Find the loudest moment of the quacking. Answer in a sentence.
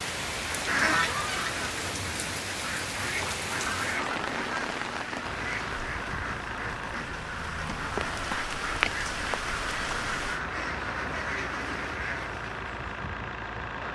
The loudest moment of the quacking is at 1 second.